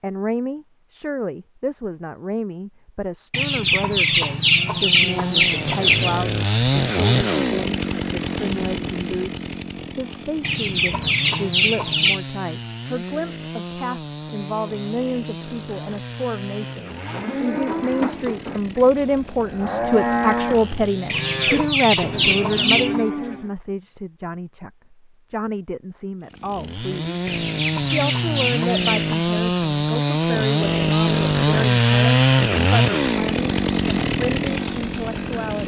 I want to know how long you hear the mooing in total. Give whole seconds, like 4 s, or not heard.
7 s.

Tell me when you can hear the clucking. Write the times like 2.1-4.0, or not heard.
3.3-6.2, 10.4-12.2, 21.1-23.0, 27.2-29.2.